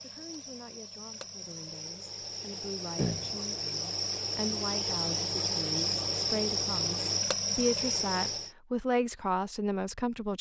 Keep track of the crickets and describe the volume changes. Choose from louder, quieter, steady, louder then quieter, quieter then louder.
louder.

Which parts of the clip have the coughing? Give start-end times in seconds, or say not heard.
3.0-3.7.